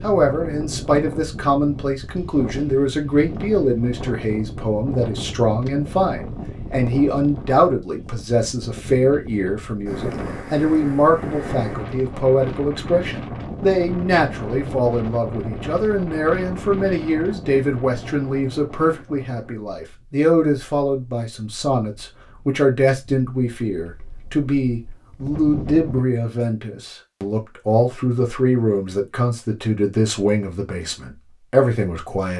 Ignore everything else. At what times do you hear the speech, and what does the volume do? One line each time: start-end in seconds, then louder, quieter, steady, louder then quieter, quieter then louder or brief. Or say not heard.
0.0-32.3 steady.